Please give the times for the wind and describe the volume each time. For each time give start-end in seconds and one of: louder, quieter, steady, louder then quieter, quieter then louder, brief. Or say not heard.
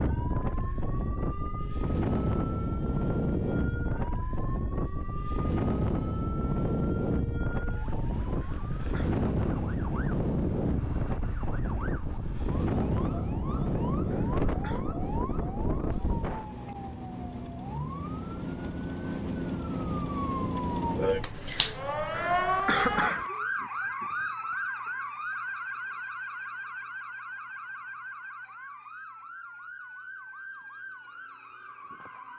0.0-16.4 steady.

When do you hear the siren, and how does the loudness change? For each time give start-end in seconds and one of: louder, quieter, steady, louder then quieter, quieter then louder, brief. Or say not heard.
0.0-32.3 louder then quieter.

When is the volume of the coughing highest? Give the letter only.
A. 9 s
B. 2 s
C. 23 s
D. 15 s
C.